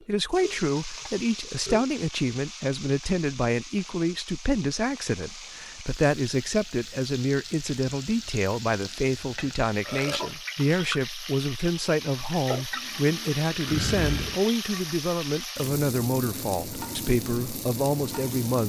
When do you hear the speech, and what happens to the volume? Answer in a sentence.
The speech can be heard from 0.1 to 18.6 s, at a steady volume.